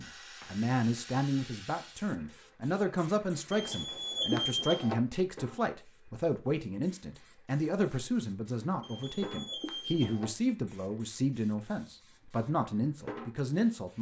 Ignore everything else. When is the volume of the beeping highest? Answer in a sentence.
The volume of the beeping peaks at 4 seconds.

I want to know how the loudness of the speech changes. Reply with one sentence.
The loudness of the speech stays about the same.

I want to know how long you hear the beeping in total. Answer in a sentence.
You can hear the beeping for 3 seconds altogether.